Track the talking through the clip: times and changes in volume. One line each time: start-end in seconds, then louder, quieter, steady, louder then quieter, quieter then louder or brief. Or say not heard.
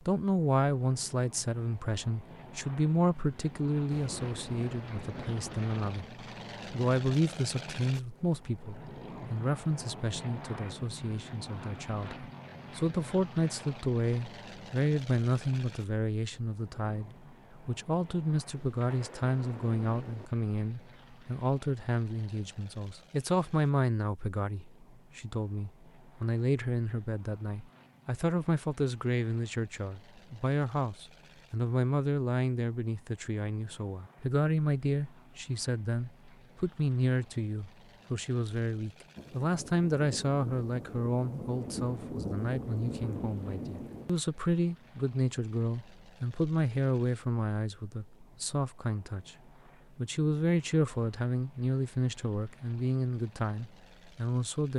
0.0-49.4 steady
50.0-54.7 quieter.